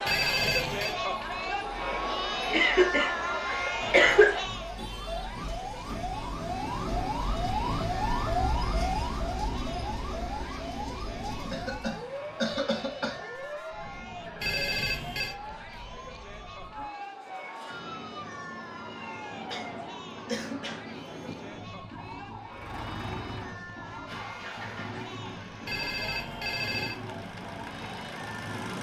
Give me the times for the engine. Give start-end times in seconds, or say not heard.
22.5-28.7.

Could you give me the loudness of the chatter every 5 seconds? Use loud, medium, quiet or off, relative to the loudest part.
loud, quiet, quiet, quiet, quiet, quiet.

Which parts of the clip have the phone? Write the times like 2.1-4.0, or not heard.
0.1-0.9, 14.4-15.3, 25.6-27.0.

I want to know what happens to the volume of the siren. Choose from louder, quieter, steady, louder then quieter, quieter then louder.
louder then quieter.